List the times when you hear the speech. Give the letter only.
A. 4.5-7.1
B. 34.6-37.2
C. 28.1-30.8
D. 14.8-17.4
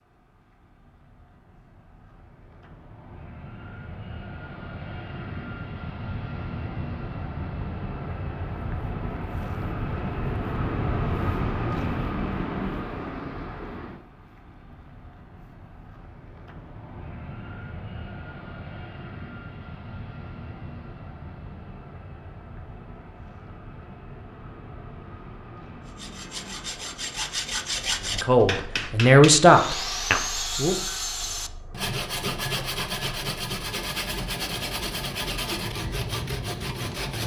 C.